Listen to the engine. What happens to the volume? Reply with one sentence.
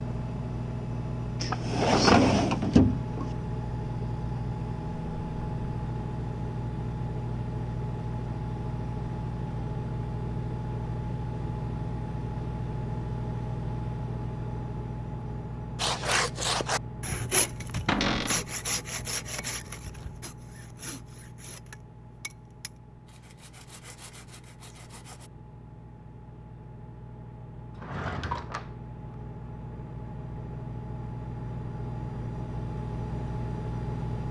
The loudness of the engine goes down, then up.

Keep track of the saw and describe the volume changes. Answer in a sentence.
The volume of the saw goes down.